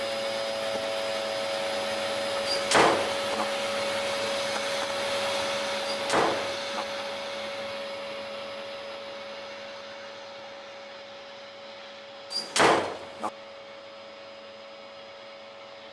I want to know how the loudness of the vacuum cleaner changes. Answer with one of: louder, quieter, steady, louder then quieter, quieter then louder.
quieter.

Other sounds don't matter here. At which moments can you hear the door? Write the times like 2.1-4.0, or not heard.
2.5-3.5, 5.9-6.8, 12.3-13.3.